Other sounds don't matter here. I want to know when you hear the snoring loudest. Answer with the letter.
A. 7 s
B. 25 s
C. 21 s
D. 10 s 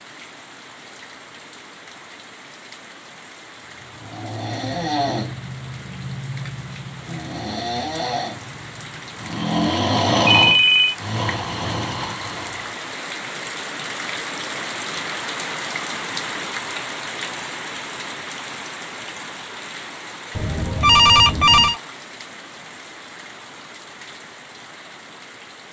D.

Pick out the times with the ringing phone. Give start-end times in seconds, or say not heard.
10.2-10.9, 20.4-21.8.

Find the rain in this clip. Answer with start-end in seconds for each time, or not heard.
0.0-25.6.